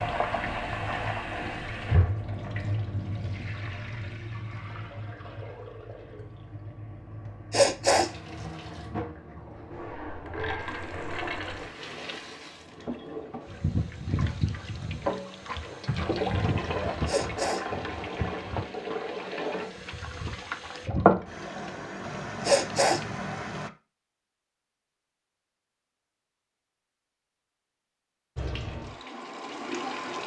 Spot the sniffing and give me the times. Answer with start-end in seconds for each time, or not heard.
7.5-8.1, 17.1-17.6, 22.4-23.0.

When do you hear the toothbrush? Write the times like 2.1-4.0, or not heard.
not heard.